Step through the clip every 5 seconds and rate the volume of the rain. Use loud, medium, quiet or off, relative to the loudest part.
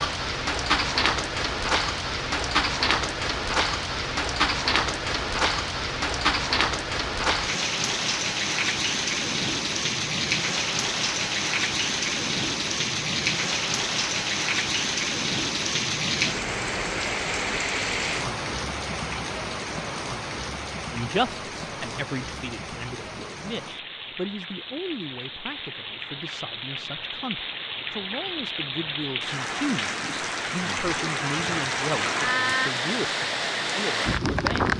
loud, loud, loud, loud, medium, medium, loud.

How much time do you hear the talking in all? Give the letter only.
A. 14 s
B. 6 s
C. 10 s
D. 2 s
A.